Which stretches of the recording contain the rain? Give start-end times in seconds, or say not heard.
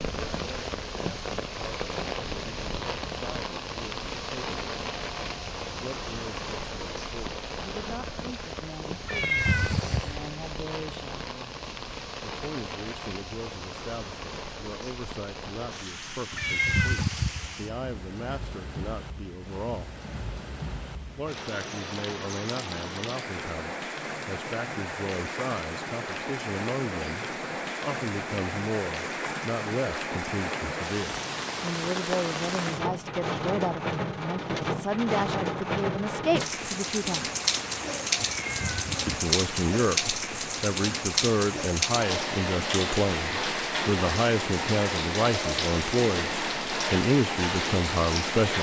0.0-48.5.